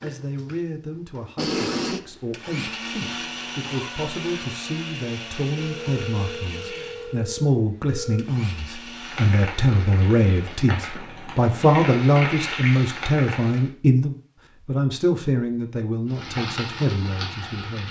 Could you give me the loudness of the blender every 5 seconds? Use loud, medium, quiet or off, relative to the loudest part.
loud, medium, off, off.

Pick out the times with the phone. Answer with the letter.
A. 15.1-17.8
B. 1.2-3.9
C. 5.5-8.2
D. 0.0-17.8
C.